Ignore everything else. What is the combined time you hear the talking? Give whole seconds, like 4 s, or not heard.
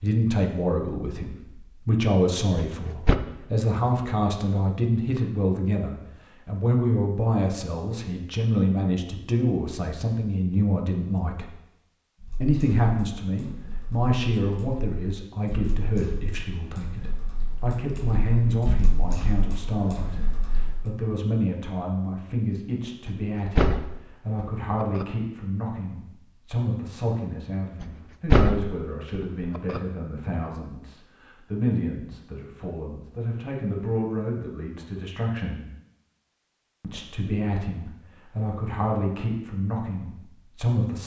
39 s.